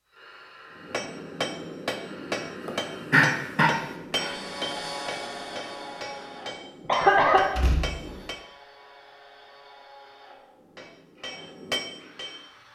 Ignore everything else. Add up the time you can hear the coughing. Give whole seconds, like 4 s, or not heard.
2 s.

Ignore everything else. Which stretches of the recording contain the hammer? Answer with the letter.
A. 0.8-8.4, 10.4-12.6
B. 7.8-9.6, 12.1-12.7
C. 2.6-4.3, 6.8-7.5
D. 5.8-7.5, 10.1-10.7
A.